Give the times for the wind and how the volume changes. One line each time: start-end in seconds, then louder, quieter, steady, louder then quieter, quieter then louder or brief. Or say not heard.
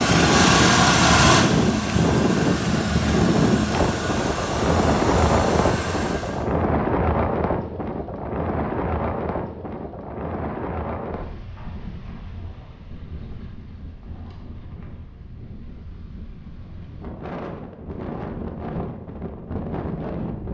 0.0-20.4 quieter then louder.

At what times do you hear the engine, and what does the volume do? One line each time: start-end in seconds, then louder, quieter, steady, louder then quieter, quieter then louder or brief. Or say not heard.
0.0-6.5 quieter.